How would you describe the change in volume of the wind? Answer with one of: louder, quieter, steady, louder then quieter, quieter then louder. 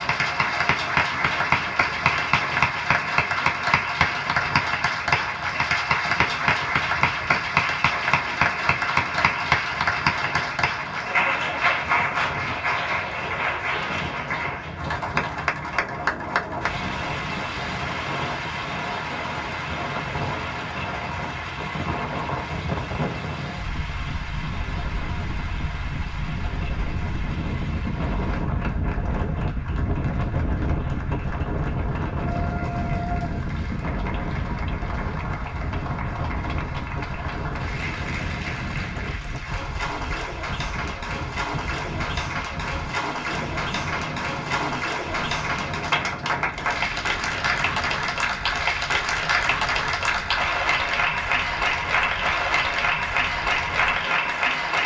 louder then quieter.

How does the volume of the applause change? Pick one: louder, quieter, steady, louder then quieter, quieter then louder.
quieter then louder.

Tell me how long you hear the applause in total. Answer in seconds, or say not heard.
55 s.